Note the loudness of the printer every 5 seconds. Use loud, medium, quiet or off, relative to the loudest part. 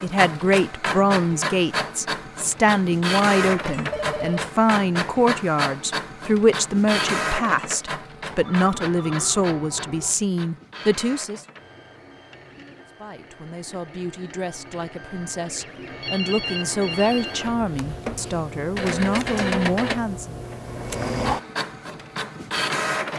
loud, loud, quiet, loud, loud.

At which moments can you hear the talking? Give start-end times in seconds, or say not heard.
0.0-11.4, 13.0-20.4.